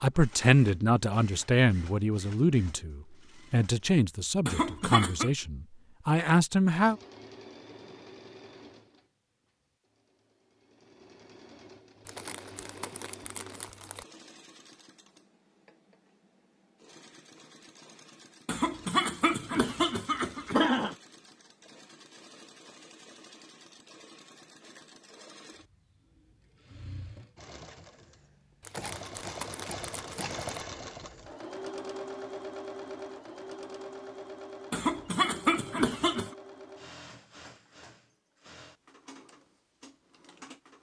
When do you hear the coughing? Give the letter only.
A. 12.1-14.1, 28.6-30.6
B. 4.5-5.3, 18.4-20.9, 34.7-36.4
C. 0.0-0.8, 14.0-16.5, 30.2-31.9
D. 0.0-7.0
B.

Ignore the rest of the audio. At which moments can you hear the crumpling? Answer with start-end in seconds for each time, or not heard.
12.1-14.1, 28.6-30.6.